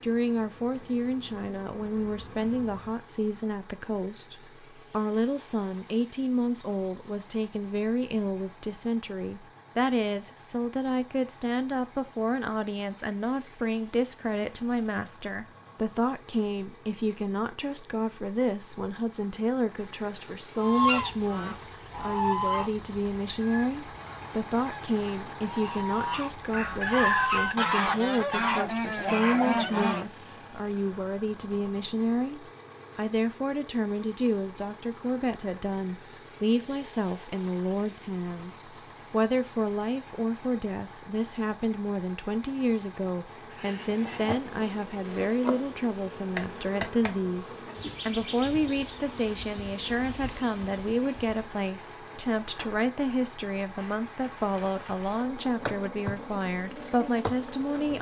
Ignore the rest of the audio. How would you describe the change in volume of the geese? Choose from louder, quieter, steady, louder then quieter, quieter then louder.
quieter then louder.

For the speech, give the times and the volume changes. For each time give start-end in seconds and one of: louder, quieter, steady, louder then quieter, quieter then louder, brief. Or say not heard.
0.0-57.9 steady.